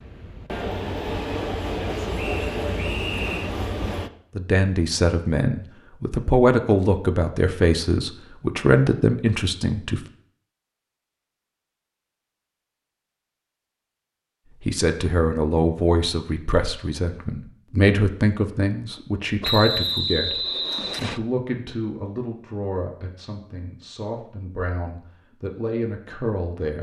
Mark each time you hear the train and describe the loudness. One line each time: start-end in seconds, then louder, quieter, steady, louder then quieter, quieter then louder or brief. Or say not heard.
0.0-4.1 steady.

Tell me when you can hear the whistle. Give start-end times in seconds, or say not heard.
2.1-3.5, 19.4-21.2.